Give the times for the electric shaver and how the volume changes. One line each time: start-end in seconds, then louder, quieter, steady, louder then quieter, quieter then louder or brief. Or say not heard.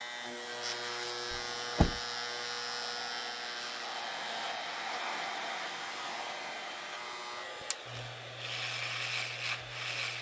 0.0-10.1 quieter then louder.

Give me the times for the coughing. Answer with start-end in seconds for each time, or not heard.
not heard.